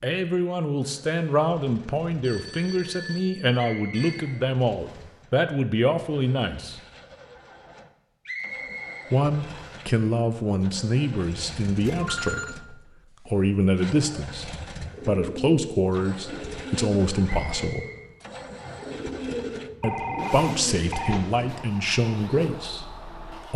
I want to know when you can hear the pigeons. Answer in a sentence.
The pigeons can be heard from 14.7 to 21.2 s.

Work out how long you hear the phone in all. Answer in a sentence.
The phone can be heard for 5 seconds in total.